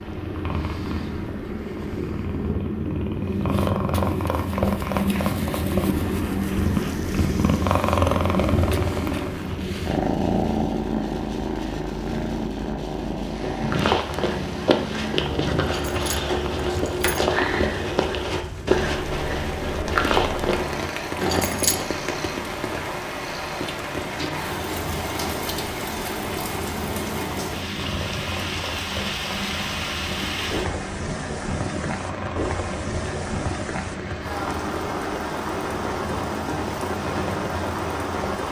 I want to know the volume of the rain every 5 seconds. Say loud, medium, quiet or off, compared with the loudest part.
off, quiet, quiet, medium, loud, loud, loud, loud.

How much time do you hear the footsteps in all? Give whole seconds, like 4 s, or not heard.
7 s.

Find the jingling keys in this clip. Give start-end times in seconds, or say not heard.
15.6-17.2, 21.2-21.9.